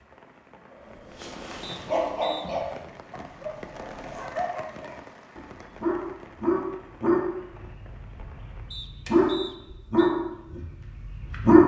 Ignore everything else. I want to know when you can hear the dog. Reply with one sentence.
The dog can be heard from 1.1 to 11.6 s.